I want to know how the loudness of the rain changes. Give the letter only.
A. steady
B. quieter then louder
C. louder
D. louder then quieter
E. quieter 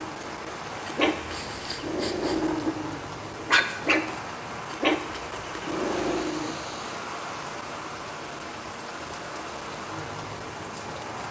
A.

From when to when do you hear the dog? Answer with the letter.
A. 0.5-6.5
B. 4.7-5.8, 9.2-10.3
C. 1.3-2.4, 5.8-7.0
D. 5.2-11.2
A.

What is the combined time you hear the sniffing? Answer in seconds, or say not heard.
2 s.